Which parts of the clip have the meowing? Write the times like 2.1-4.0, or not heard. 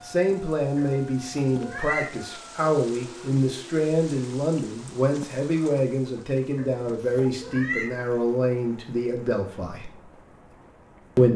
0.8-2.1, 6.5-7.9.